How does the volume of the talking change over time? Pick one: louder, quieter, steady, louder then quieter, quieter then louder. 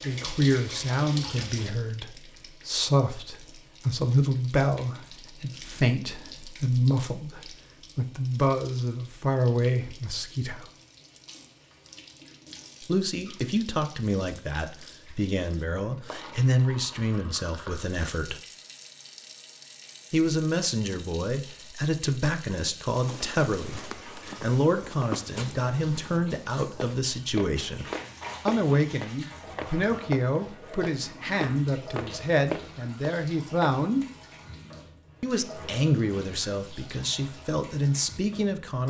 steady.